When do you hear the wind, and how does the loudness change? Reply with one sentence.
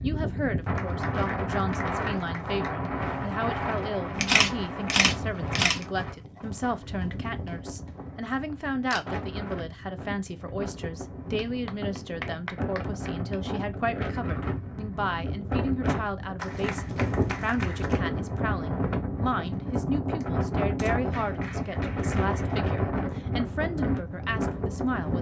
The wind can be heard from 0.0 to 25.1 s, getting quieter then louder.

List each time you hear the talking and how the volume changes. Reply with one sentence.
The talking can be heard from 0.0 to 25.1 s, at a steady volume.